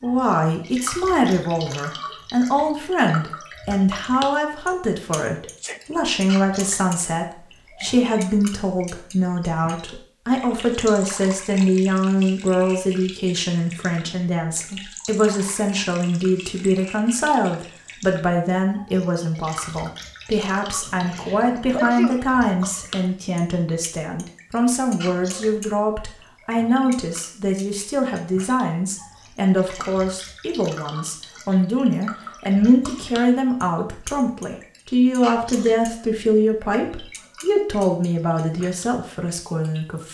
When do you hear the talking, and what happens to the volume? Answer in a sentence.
The talking can be heard from 0.0 to 40.1 s, at a steady volume.